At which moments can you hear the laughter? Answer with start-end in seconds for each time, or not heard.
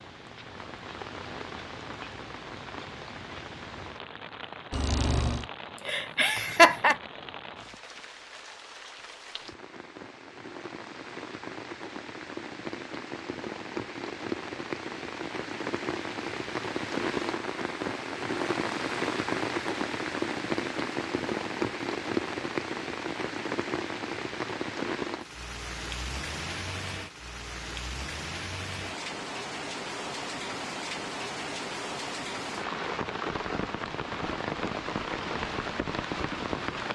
5.8-7.0.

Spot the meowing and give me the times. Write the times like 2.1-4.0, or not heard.
4.7-5.5.